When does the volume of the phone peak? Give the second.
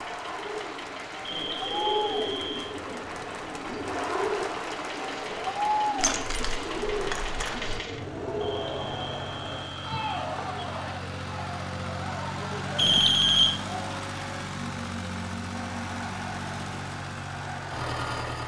13 s.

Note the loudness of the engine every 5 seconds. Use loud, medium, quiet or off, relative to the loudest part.
medium, medium, loud, loud.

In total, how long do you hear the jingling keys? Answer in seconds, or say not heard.
2 s.